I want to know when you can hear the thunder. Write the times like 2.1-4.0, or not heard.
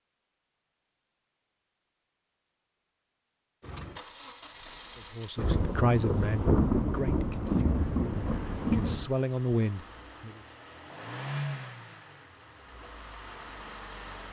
5.3-9.1.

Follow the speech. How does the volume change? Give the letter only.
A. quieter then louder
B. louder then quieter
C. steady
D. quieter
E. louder
A.